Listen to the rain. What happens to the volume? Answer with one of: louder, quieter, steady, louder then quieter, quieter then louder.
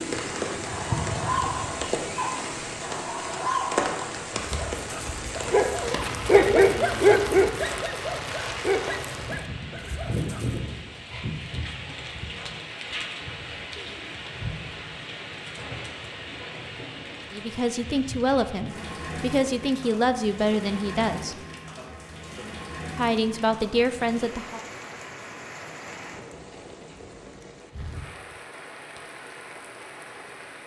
quieter.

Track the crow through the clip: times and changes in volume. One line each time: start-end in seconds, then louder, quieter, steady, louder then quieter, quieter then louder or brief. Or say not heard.
not heard.